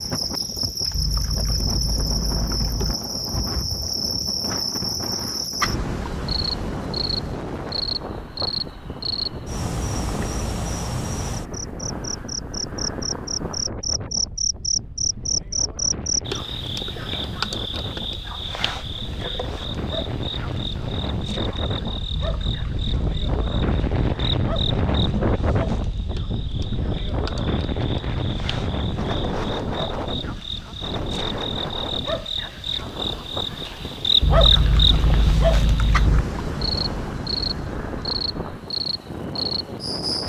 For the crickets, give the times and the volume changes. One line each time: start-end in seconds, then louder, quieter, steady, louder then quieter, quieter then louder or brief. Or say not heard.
0.0-40.2 quieter then louder.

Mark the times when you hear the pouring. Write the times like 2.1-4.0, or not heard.
0.9-3.0, 22.1-24.1, 34.2-36.2.